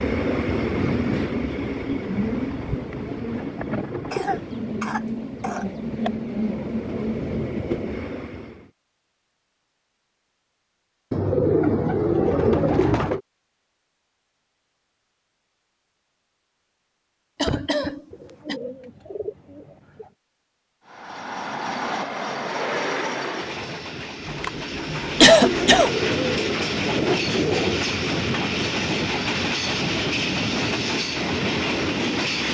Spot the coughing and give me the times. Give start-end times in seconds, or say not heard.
4.1-6.1, 17.4-18.6, 24.2-25.9.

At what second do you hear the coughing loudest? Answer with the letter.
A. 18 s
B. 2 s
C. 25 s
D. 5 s
C.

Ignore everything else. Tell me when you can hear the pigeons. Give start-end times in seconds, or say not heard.
2.1-4.6, 11.1-13.2, 18.1-20.1, 25.4-27.9.